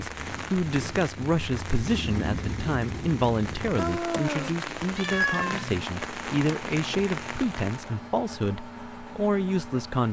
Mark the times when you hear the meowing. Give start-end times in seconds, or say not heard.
3.8-5.7.